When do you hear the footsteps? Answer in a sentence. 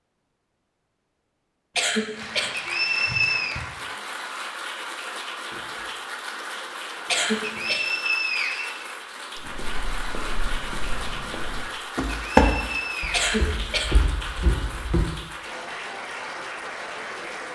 You can hear the footsteps from 9.3 to 15.1 s.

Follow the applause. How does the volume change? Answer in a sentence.
The loudness of the applause stays about the same.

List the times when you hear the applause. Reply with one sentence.
You can hear the applause from 2.1 to 17.5 s.